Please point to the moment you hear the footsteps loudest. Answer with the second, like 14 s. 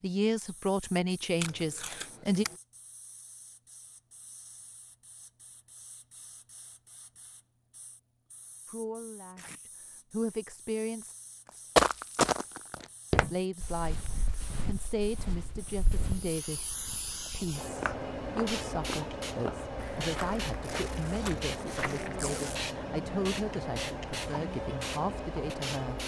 12 s.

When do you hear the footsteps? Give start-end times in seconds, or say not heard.
11.8-22.1.